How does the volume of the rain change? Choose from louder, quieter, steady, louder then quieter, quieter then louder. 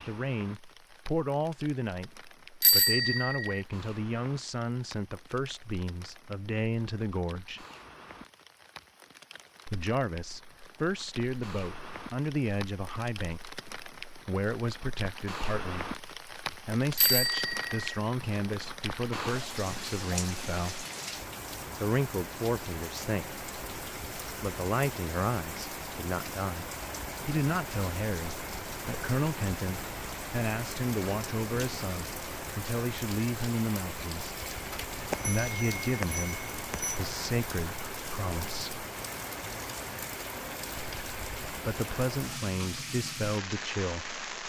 louder.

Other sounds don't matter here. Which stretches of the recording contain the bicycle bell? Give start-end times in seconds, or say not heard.
2.6-3.6, 16.9-17.8, 35.1-37.0.